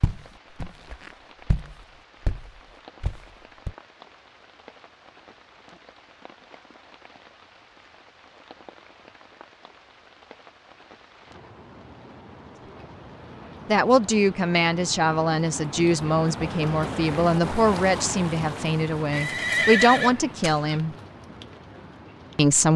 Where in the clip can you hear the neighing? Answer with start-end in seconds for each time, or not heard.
19.1-20.8.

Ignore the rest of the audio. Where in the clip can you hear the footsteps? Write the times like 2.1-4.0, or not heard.
0.0-3.7.